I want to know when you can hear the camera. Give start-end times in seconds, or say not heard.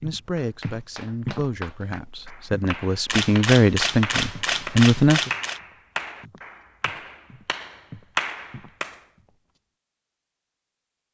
3.0-5.6.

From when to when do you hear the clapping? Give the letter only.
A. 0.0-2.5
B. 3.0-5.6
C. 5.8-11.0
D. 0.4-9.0
D.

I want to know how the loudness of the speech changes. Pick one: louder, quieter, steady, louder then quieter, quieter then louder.
louder.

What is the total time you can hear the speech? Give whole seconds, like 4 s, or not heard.
5 s.